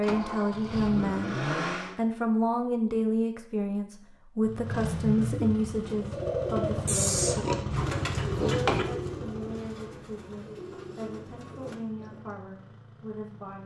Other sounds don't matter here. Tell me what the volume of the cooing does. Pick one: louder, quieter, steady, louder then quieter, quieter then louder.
quieter.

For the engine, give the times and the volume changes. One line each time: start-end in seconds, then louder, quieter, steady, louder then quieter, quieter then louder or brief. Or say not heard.
0.0-1.9 brief
4.4-13.6 quieter.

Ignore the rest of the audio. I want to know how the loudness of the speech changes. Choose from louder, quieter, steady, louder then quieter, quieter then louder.
quieter.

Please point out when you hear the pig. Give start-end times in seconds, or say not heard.
6.8-8.8.